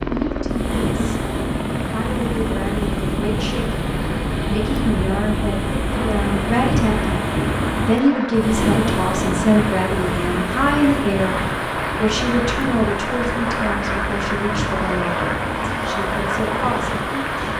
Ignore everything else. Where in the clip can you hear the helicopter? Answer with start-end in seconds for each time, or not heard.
0.0-17.5.